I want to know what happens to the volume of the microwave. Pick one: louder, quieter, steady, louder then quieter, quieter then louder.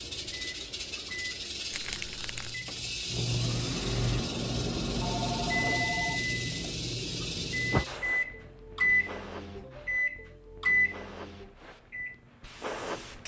louder.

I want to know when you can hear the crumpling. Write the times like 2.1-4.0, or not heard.
1.7-2.6.